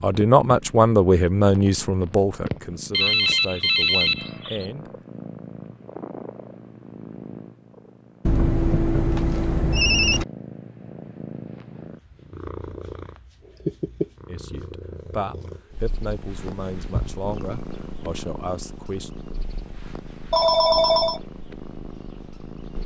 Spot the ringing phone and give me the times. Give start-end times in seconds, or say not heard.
2.9-4.7, 8.2-10.2, 20.3-21.2.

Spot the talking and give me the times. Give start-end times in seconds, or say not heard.
0.0-4.9, 14.2-19.1.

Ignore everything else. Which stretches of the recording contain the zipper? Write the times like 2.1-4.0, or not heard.
not heard.